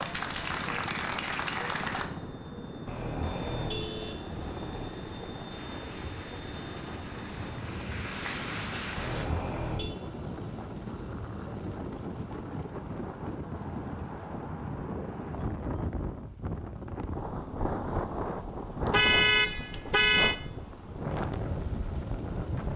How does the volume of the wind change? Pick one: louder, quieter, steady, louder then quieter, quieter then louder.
louder.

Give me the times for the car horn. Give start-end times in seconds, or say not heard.
2.9-4.9, 8.9-10.0, 18.9-20.4.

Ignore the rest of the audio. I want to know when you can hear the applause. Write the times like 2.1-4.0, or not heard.
0.0-2.0, 5.5-9.3.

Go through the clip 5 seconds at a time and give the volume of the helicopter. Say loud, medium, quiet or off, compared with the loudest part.
loud, loud, medium, quiet, medium.